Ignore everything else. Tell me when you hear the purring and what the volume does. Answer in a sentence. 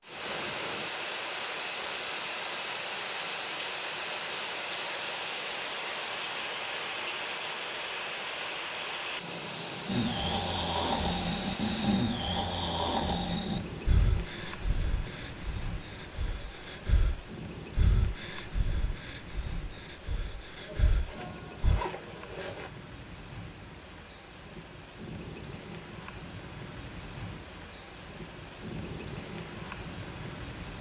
The purring can't be heard in this clip.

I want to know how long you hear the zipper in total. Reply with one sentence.
You can hear the zipper for 2 seconds altogether.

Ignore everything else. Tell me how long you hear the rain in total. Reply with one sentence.
The rain can be heard for 31 seconds in total.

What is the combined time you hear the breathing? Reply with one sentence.
The breathing can be heard for 12 seconds in total.